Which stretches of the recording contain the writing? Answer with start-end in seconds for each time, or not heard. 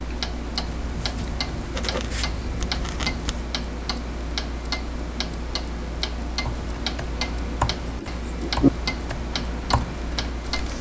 0.7-3.5, 7.8-8.7.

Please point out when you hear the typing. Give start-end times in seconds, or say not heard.
6.5-10.7.